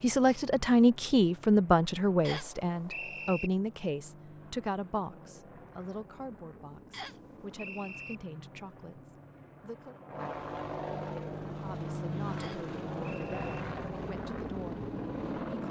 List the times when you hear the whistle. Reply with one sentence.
You can hear the whistle from 2.2 to 3.5 s, from 6.9 to 8.2 s and from 12.3 to 13.6 s.